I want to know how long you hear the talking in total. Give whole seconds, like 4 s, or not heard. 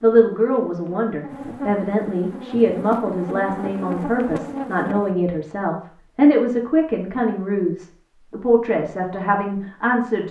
10 s.